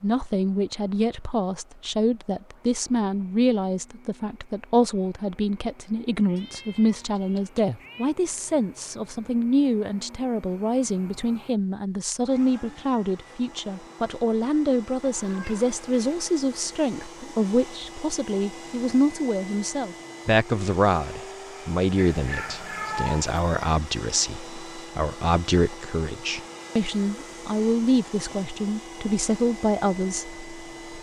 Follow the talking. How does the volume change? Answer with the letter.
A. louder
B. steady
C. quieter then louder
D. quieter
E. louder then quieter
B.